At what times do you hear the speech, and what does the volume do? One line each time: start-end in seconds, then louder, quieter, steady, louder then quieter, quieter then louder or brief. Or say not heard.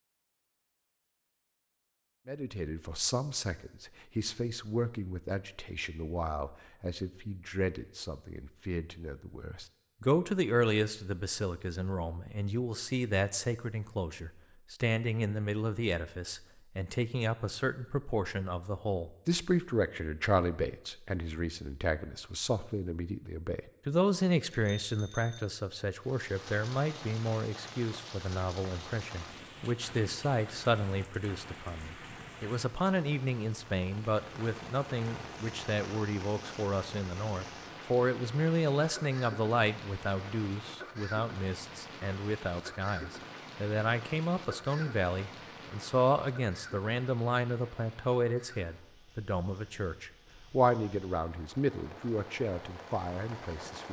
2.2-53.8 steady.